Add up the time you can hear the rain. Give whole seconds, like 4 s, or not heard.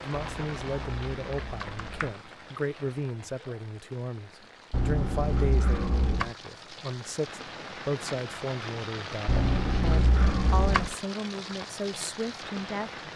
13 s.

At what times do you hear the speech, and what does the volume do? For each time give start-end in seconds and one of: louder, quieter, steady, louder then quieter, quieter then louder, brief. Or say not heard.
0.0-13.1 steady.